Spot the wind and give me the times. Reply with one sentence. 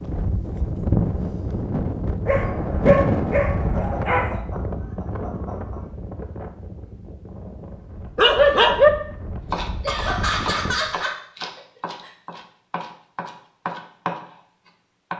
You can hear the wind from 0.0 to 11.0 s.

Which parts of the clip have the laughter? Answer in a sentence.
You can hear the laughter from 3.7 to 5.8 s and from 9.8 to 12.1 s.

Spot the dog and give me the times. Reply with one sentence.
You can hear the dog from 2.2 to 4.4 s and from 8.2 to 8.9 s.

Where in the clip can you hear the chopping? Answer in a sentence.
You can hear the chopping from 9.5 to 15.1 s.